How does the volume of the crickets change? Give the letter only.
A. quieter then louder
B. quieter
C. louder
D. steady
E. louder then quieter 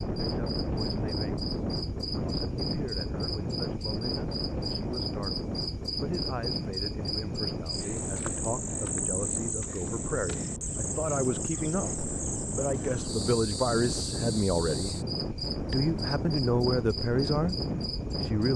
D.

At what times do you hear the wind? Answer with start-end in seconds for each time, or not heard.
0.0-18.5.